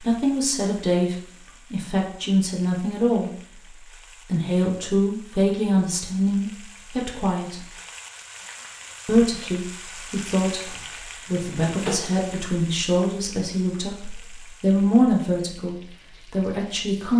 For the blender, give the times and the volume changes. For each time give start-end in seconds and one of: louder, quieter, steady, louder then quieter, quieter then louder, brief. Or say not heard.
not heard.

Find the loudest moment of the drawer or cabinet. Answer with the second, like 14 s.
12 s.